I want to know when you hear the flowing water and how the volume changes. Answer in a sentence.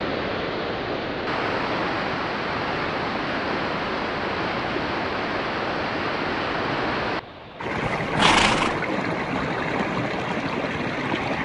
The flowing water can be heard from 0.0 to 11.4 s, at a steady volume.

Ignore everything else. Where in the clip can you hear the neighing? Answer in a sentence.
The neighing can be heard from 7.8 to 8.8 s.